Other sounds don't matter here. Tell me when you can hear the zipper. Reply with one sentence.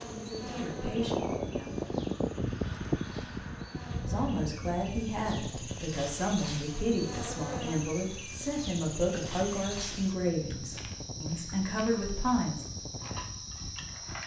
The zipper can't be heard in this clip.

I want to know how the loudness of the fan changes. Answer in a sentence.
The volume of the fan goes down.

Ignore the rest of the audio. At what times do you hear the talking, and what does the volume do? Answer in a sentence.
The talking can be heard briefly from 0.0 to 1.9 s; and from 4.0 to 12.7 s, at a steady volume.